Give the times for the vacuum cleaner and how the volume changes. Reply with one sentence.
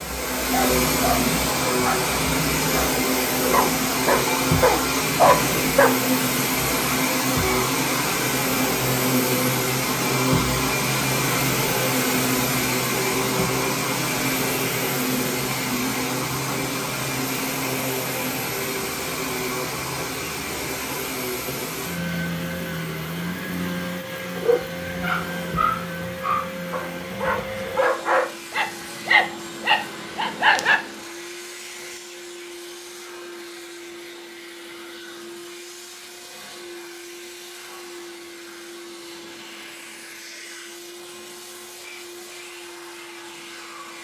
You can hear the vacuum cleaner from 0.0 to 43.9 s, getting quieter.